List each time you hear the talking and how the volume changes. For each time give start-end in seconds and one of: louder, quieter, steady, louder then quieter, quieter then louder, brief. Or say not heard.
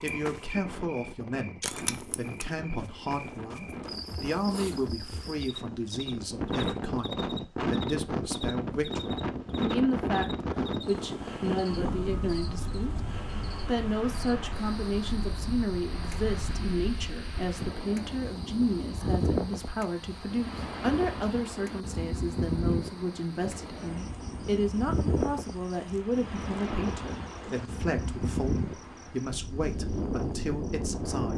0.0-31.3 steady.